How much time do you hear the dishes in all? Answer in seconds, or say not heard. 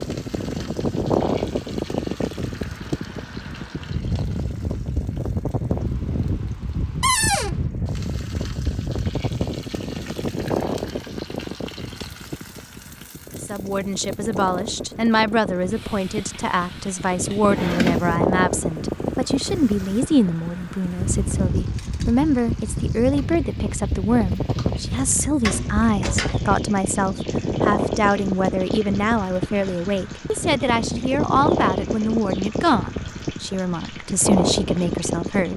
not heard.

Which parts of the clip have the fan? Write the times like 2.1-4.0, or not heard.
0.0-35.5.